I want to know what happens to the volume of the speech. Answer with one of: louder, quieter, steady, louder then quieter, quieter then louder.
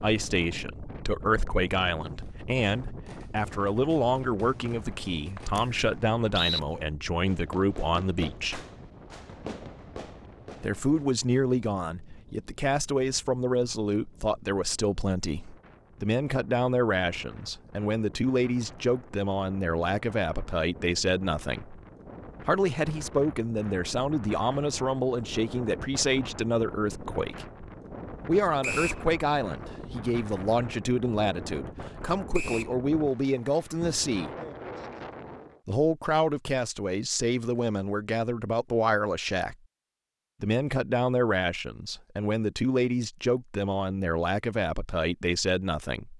steady.